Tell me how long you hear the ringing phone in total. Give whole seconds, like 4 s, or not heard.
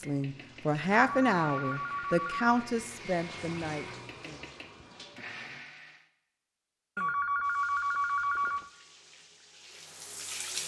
3 s.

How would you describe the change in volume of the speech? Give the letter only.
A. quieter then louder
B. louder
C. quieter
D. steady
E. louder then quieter
C.